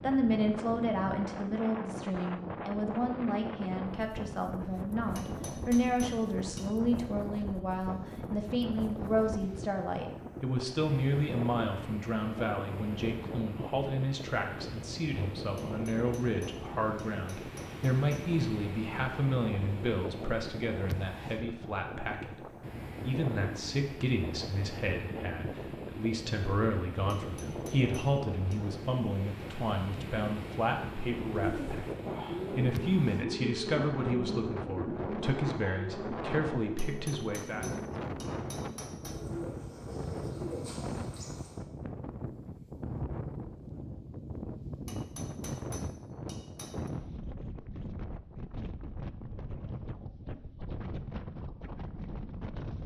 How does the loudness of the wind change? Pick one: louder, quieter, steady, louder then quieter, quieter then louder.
steady.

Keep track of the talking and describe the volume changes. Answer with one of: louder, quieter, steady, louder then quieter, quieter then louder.
steady.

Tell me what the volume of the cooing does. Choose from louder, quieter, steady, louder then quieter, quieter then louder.
quieter.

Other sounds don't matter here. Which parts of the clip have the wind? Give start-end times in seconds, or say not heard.
0.0-52.8.